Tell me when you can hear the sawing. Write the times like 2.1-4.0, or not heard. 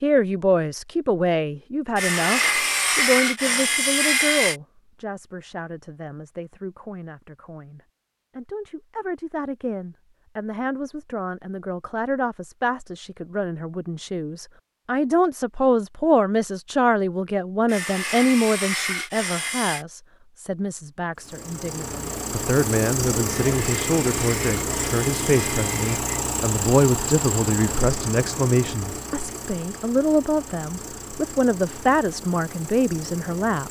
1.9-4.6, 17.6-19.9, 23.2-26.1.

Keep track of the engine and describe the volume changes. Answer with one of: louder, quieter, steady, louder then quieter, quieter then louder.
quieter.